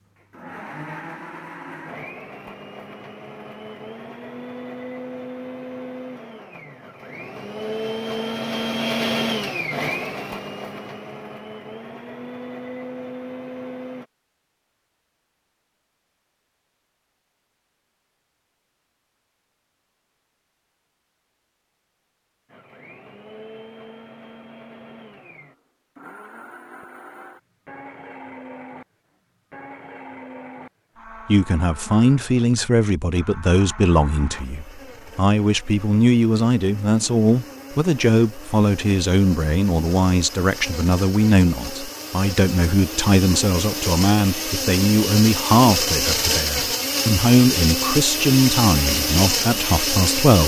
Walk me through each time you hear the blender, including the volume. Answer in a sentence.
The blender can be heard from 0.0 to 14.1 s, getting louder then quieter; and from 22.5 to 50.4 s, getting louder.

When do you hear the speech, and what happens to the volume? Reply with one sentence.
The speech can be heard from 31.2 to 50.4 s, at a steady volume.